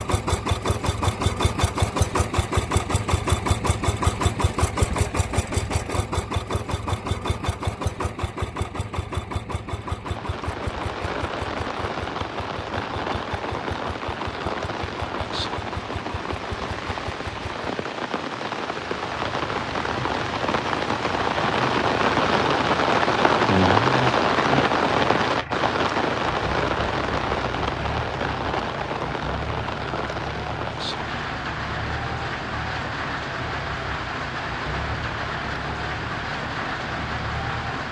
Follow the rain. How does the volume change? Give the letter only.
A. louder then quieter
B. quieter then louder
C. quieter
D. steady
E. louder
A.